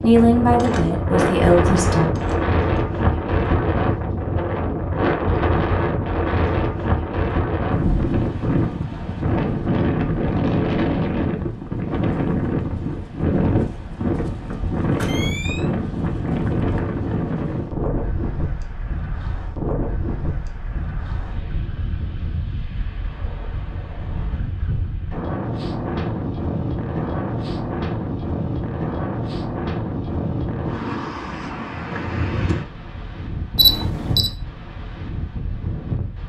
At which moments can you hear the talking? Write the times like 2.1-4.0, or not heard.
0.0-2.1.